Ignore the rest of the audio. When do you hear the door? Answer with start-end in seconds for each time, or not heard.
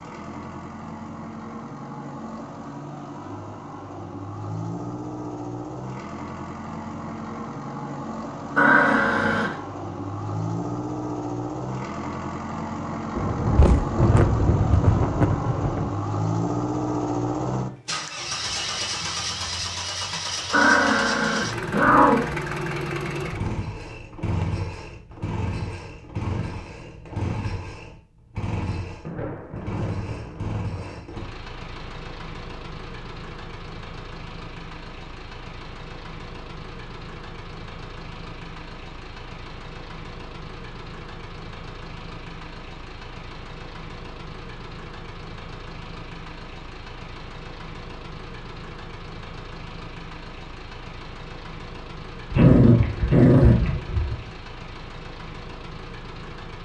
not heard.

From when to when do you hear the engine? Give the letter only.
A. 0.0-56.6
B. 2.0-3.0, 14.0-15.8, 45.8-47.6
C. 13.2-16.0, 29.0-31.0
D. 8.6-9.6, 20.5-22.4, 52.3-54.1
A.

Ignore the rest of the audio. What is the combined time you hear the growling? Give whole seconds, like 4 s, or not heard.
5 s.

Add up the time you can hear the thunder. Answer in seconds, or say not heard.
5 s.